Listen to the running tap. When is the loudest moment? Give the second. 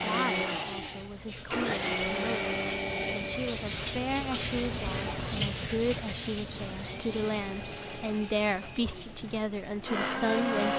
5 s.